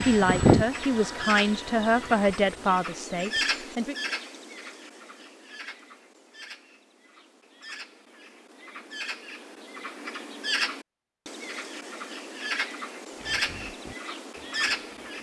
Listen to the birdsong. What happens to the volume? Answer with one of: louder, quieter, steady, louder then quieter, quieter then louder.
quieter then louder.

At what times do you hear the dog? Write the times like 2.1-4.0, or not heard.
not heard.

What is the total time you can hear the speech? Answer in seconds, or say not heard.
4 s.